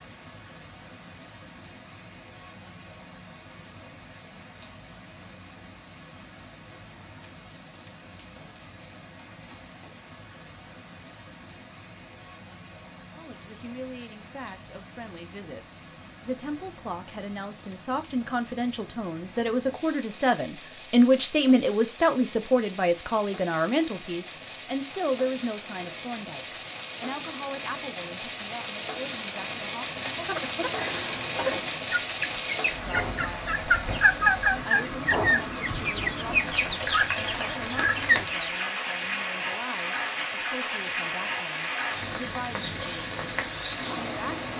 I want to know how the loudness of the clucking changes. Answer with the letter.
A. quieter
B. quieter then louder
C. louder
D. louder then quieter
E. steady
D.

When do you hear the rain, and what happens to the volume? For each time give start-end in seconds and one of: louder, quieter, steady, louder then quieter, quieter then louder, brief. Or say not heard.
0.0-44.5 louder.